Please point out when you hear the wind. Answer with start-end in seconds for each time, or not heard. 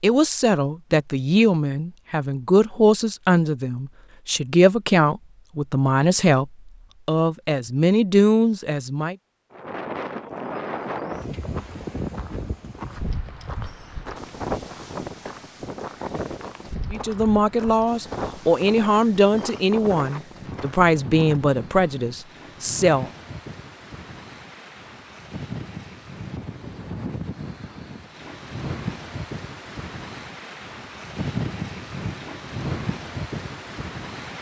9.5-34.3.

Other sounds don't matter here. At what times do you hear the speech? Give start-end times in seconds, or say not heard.
0.0-9.2, 16.9-23.1.